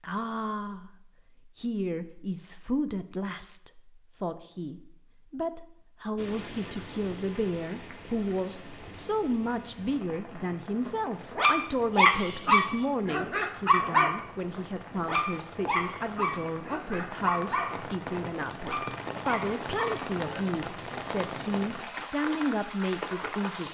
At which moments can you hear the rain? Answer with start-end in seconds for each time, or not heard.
6.2-23.6.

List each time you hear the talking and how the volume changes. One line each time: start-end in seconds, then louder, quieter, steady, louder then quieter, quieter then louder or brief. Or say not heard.
0.0-23.6 steady.